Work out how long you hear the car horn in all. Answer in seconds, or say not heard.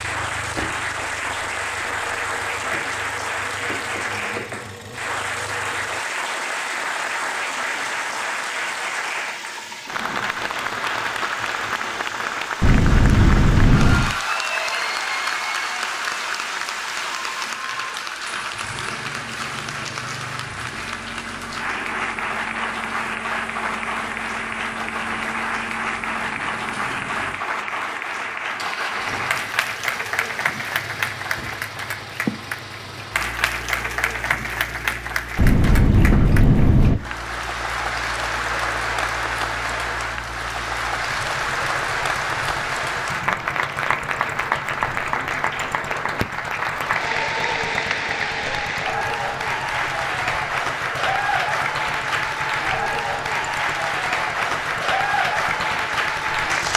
3 s.